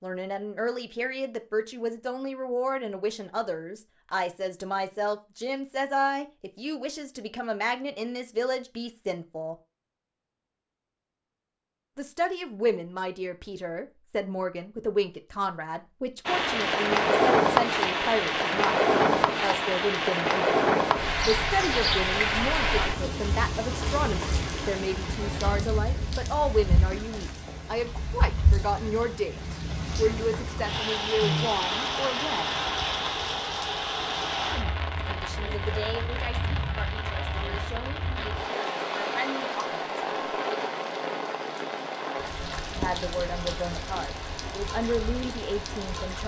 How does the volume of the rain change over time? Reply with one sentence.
The loudness of the rain goes down.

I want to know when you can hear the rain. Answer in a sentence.
You can hear the rain from 16.2 to 46.2 s.